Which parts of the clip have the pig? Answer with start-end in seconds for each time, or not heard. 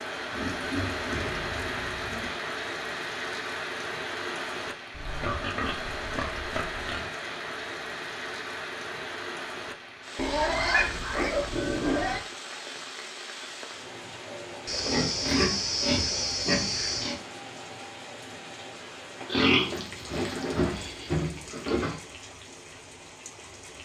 0.3-2.3, 4.9-7.1, 10.2-12.2, 14.7-17.1, 19.3-22.0.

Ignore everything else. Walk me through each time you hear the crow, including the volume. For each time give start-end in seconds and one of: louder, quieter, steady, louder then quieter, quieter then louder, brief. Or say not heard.
not heard.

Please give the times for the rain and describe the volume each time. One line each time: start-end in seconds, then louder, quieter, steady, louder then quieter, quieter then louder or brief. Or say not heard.
0.0-23.8 quieter.